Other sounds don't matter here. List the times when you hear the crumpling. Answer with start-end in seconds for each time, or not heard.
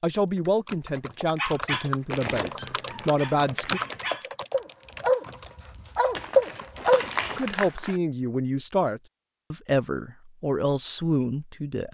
2.1-4.1, 6.2-8.0.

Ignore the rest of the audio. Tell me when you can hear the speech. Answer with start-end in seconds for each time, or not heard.
0.0-3.8, 7.3-11.8.